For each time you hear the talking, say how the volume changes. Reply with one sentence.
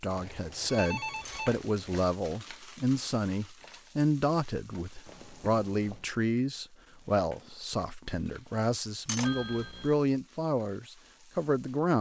The talking can be heard from 0.0 to 11.9 s, at a steady volume.